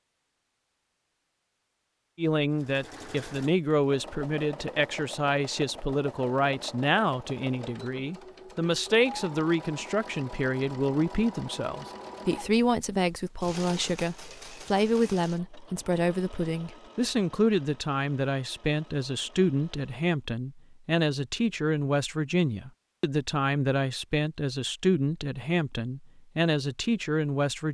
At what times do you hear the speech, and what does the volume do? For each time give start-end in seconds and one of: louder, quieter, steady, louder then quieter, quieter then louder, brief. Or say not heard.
2.1-27.6 steady.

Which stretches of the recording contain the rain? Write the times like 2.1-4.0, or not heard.
not heard.